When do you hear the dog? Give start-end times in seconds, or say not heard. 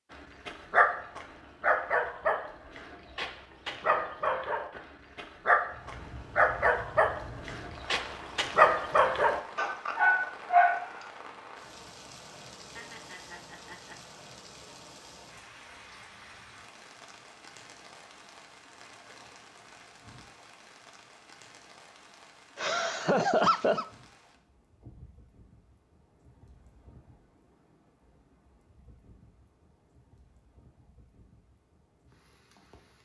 0.5-11.1.